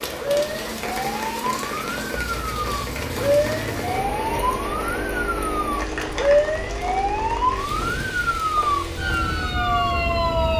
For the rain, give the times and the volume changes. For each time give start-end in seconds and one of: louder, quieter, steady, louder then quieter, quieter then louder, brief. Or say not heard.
0.0-10.5 quieter.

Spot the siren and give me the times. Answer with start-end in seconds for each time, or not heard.
0.0-10.5.